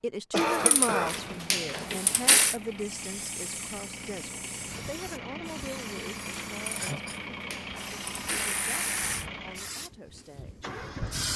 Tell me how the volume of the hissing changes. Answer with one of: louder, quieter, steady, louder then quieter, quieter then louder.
steady.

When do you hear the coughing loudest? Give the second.
1 s.